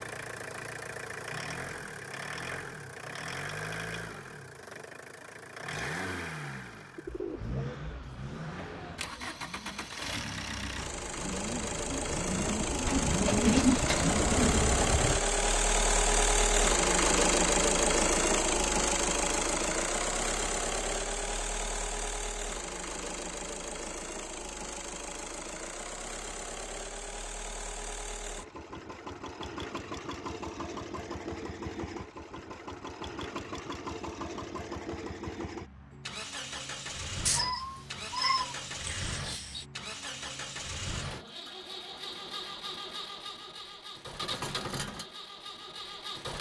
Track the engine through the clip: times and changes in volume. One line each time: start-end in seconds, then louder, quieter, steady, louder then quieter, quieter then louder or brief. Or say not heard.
0.0-46.3 louder then quieter.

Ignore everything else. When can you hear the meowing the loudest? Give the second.
38 s.